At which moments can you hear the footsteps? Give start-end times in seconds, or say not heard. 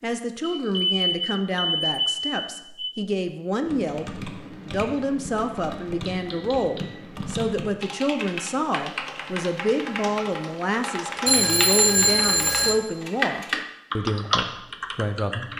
not heard.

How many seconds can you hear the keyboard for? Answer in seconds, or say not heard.
12 s.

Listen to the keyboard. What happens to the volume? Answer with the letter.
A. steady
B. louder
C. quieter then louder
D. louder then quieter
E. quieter
B.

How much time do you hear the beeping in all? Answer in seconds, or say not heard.
5 s.